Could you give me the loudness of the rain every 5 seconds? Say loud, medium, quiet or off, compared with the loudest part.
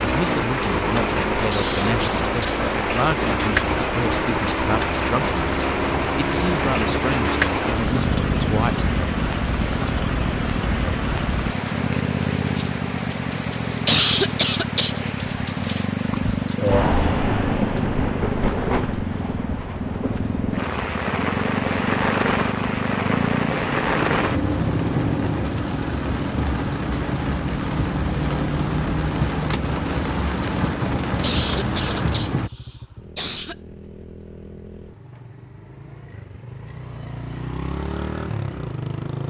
loud, loud, medium, loud, loud, loud, loud, off.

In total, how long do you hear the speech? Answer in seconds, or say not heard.
9 s.